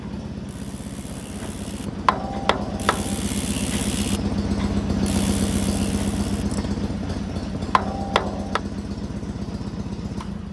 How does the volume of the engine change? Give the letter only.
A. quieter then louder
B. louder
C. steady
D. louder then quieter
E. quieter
D.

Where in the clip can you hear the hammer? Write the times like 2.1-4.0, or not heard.
1.1-3.1, 6.9-8.6.